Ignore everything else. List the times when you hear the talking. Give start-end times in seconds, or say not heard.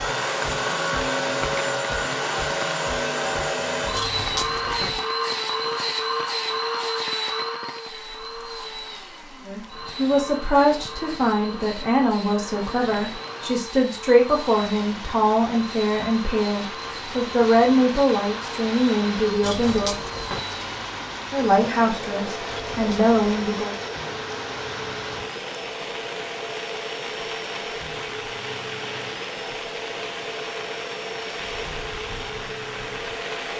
9.4-19.9, 21.3-23.8.